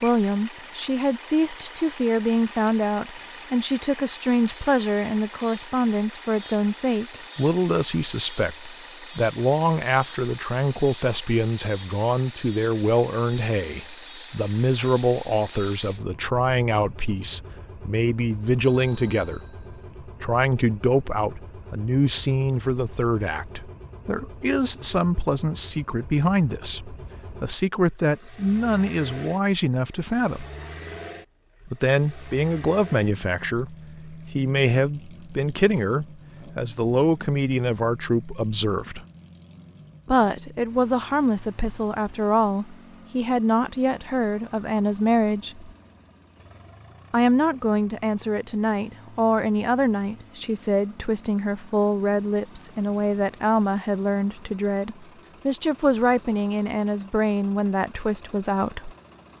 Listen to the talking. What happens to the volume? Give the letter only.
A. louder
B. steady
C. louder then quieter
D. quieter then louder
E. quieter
B.